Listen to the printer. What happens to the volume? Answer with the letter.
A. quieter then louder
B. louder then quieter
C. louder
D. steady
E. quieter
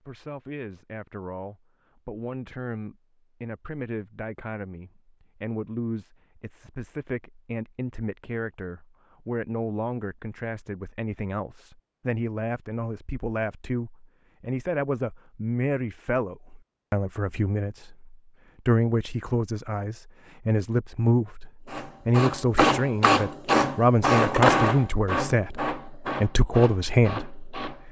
E.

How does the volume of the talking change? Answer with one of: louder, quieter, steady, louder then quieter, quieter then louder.
louder.